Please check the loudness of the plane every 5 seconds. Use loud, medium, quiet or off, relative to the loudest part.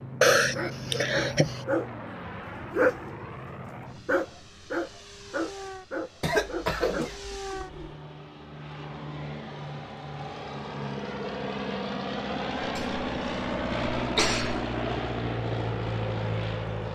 medium, medium, loud, loud.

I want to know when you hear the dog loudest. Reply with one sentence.
The volume of the dog peaks at 3 seconds.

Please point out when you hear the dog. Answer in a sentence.
You can hear the dog from 0.2 to 7.7 s.